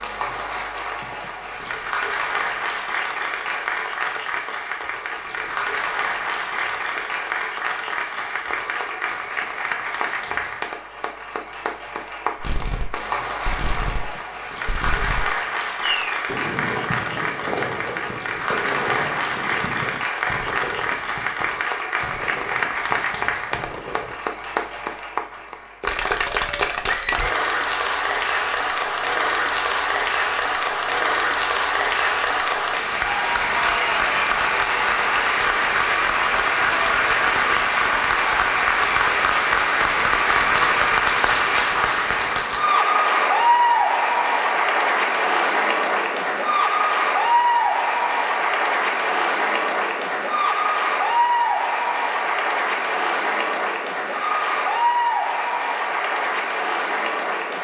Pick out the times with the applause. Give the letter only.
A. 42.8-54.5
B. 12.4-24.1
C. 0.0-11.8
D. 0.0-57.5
D.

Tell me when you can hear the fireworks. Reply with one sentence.
You can hear the fireworks from 12.4 to 24.1 s.